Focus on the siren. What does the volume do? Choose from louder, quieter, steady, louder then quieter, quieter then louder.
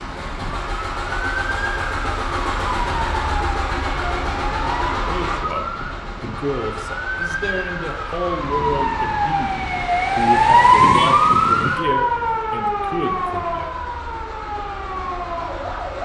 louder then quieter.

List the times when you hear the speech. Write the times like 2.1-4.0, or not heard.
5.0-13.7.